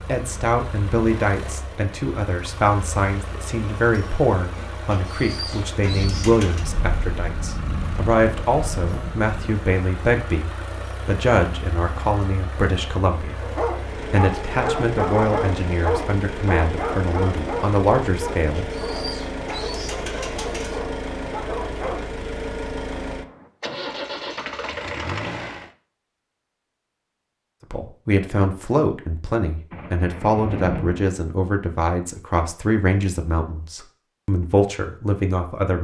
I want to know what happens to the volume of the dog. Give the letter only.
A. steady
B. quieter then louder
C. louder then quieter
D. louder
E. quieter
E.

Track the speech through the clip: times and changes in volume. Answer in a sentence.
The speech can be heard from 0.1 to 19.1 s, at a steady volume; and from 27.7 to 35.7 s, at a steady volume.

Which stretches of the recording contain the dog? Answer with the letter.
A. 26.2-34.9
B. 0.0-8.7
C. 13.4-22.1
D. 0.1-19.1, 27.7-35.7
C.